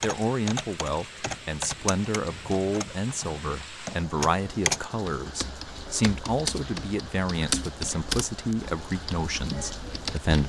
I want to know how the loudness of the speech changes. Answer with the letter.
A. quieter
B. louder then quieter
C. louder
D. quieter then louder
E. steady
E.